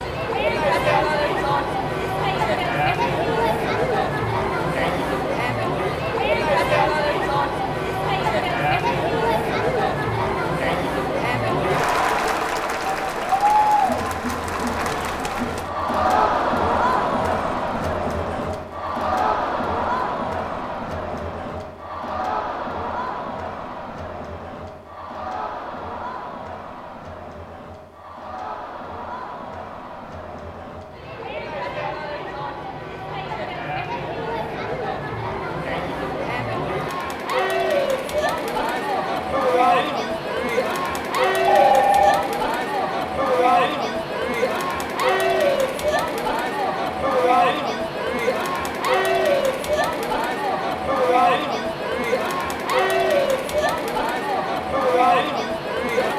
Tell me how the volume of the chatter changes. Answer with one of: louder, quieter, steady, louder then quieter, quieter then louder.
quieter then louder.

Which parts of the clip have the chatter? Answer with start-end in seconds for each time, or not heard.
0.0-56.1.